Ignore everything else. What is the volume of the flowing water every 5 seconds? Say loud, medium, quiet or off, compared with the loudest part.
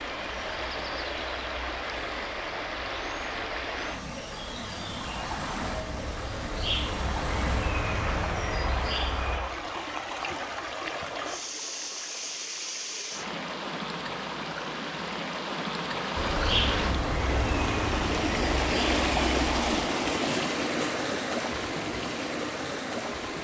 medium, medium, medium, loud, loud.